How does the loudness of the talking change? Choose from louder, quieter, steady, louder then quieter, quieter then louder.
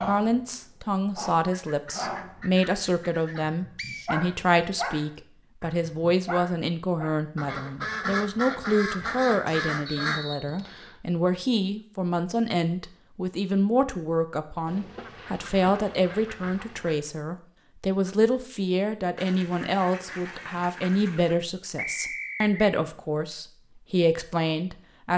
steady.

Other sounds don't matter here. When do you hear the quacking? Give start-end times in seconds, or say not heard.
1.5-3.5, 7.3-10.2, 14.7-17.0, 19.1-21.4.